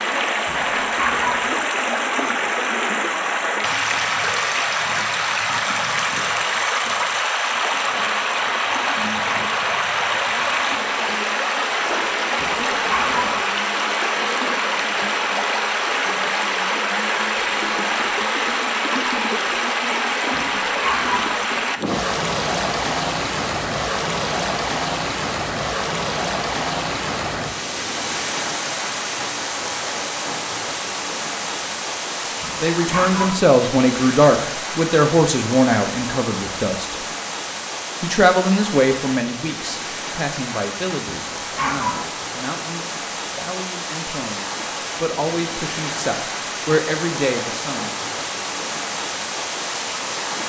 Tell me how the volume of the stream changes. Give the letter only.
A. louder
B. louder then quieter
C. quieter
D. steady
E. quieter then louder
C.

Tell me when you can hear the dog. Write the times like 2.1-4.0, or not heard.
0.5-1.5, 12.4-13.4, 20.3-21.4, 32.4-33.5, 41.0-42.1.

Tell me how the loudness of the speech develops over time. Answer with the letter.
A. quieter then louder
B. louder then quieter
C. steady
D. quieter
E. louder
A.